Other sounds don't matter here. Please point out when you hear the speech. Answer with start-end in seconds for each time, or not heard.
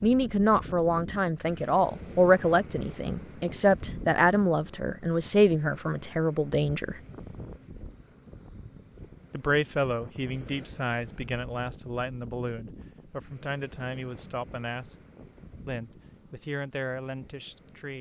0.0-7.0, 9.3-14.9, 15.7-17.9.